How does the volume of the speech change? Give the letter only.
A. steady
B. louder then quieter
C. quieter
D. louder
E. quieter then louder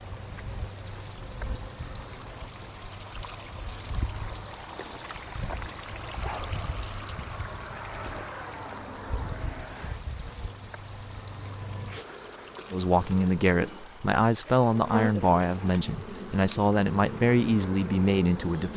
A.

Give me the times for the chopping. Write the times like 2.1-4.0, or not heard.
not heard.